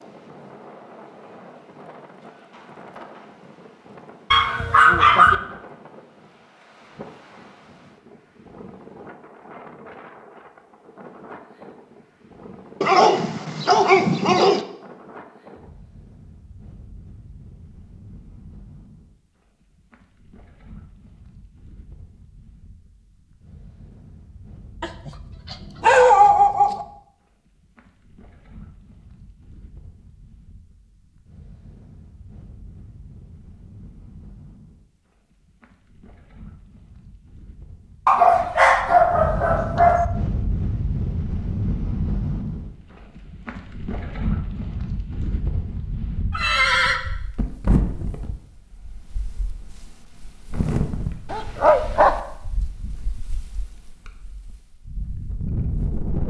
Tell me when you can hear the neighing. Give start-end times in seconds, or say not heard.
46.3-47.0.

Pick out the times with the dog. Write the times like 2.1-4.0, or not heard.
4.3-5.3, 12.8-14.6, 24.8-26.9, 38.0-40.0, 51.3-52.1.